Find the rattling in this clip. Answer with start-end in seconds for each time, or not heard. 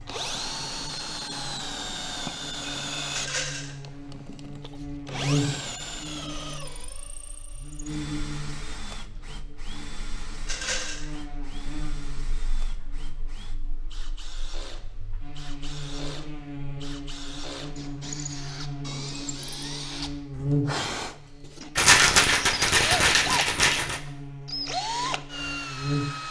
3.1-3.7, 10.4-11.1, 21.8-24.0.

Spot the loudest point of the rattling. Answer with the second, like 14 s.
22 s.